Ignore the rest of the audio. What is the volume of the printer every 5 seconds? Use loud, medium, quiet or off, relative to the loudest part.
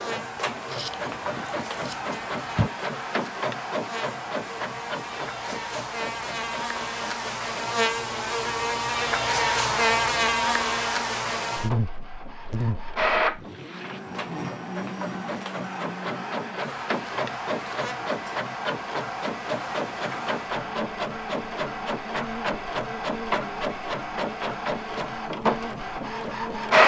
medium, quiet, medium, medium, medium, loud.